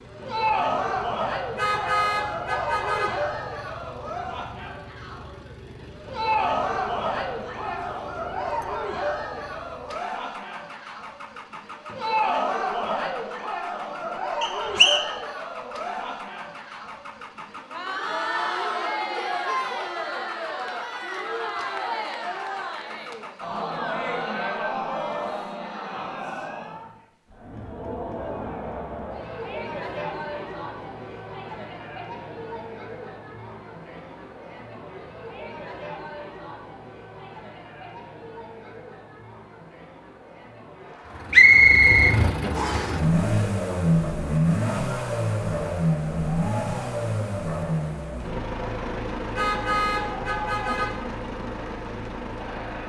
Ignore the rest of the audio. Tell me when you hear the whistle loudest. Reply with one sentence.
The loudest moment of the whistle is at 42 seconds.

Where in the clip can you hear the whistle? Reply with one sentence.
The whistle can be heard from 14.4 to 15.1 s and from 41.3 to 43.0 s.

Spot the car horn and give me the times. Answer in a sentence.
You can hear the car horn from 1.6 to 3.2 s and from 49.3 to 51.0 s.